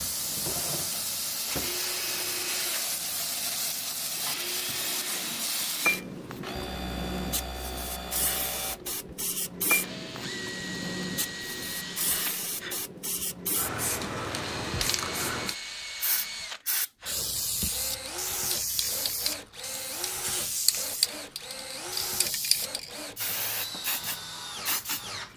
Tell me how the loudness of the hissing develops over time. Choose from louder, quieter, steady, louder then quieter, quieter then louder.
steady.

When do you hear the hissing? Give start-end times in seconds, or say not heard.
0.0-25.3.